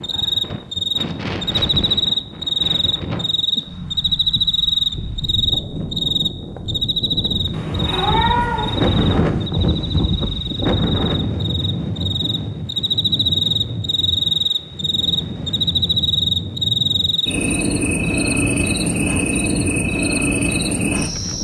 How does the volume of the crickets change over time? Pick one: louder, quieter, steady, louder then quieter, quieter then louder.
quieter then louder.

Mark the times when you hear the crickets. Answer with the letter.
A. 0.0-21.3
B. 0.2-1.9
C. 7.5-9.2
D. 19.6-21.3
A.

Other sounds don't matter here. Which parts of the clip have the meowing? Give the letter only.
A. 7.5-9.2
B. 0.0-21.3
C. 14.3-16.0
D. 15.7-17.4
A.